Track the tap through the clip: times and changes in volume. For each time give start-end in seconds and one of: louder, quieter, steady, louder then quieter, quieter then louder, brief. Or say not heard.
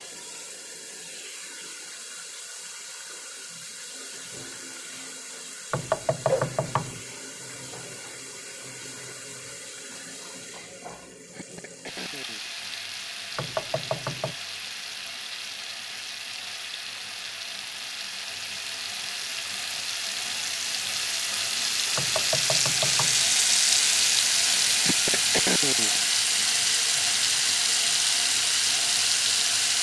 0.0-29.7 louder.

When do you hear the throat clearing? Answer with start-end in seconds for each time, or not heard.
11.3-12.5, 24.8-26.0.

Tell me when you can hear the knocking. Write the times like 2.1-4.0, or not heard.
5.7-7.0, 13.3-14.3, 21.9-23.2.